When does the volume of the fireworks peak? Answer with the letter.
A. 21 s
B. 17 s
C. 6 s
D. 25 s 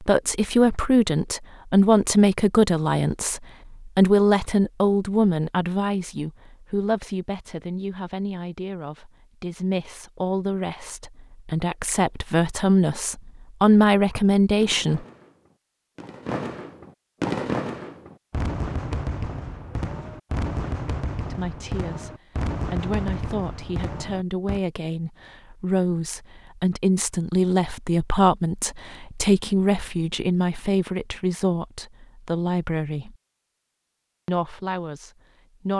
B.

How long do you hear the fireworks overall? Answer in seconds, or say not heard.
10 s.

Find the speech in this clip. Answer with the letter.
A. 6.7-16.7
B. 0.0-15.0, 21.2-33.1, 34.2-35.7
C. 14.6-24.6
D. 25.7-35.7
B.